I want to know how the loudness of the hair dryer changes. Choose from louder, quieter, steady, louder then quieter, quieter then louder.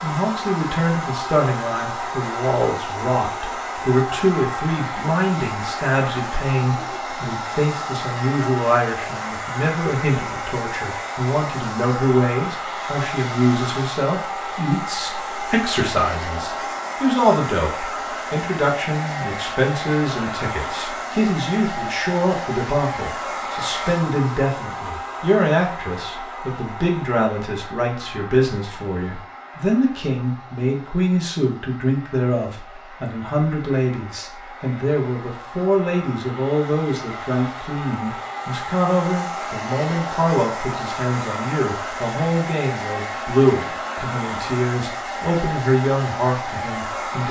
quieter then louder.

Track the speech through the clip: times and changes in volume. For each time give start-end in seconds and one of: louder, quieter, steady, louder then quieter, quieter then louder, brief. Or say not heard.
0.0-47.2 steady.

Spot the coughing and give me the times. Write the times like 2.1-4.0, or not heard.
not heard.